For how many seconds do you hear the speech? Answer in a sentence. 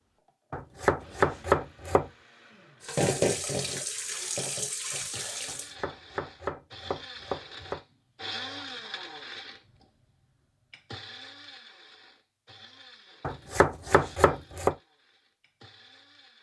You can't hear the speech here.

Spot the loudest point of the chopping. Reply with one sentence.
The volume of the chopping peaks at 1 second.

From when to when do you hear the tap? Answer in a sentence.
The tap can be heard from 2.8 to 5.8 s.